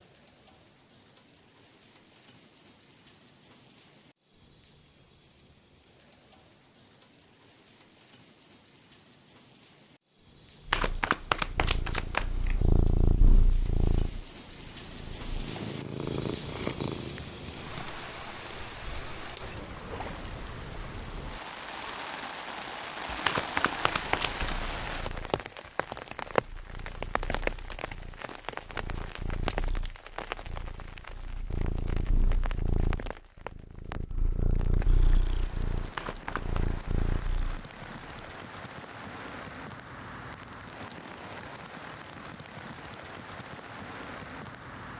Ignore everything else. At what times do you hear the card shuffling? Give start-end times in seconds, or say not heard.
10.7-12.7, 23.2-24.6, 36.0-36.6.